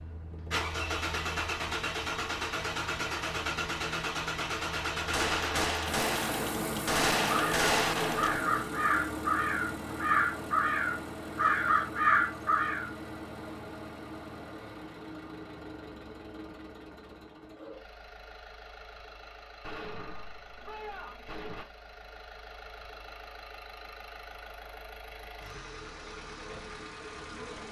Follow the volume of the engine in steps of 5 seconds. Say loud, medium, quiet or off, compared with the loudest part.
loud, loud, medium, quiet, quiet, medium.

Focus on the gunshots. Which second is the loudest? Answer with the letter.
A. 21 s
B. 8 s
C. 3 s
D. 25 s
B.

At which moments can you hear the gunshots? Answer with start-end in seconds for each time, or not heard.
5.1-8.4, 19.6-21.6.